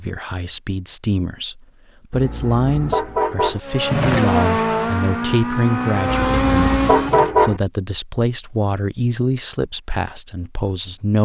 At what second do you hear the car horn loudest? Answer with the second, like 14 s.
7 s.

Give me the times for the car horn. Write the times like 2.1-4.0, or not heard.
2.1-3.6, 6.2-7.6.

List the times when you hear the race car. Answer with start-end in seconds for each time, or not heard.
3.6-7.3.